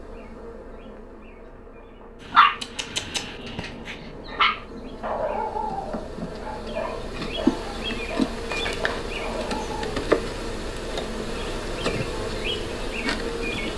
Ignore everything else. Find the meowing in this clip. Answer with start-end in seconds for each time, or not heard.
not heard.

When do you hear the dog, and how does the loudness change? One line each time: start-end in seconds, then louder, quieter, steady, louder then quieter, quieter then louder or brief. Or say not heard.
2.3-9.9 louder then quieter.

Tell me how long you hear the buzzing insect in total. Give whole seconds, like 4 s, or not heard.
14 s.